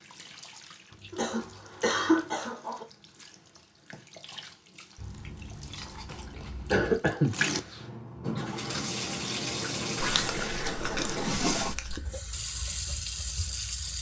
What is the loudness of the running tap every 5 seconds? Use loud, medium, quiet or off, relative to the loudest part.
quiet, loud, loud.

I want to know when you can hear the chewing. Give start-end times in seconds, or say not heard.
0.9-2.5, 5.0-7.0, 10.0-12.0.